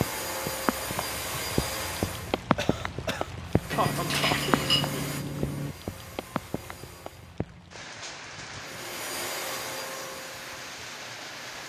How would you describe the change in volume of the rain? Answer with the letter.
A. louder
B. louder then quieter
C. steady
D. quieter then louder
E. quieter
E.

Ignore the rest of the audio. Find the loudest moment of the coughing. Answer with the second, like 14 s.
4 s.